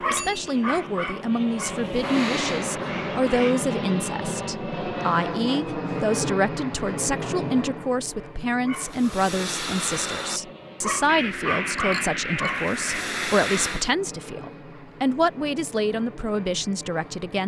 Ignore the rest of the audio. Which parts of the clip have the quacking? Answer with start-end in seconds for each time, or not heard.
2.0-3.6, 11.1-13.8.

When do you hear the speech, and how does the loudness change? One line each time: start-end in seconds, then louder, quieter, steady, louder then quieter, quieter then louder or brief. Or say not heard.
0.1-17.4 steady.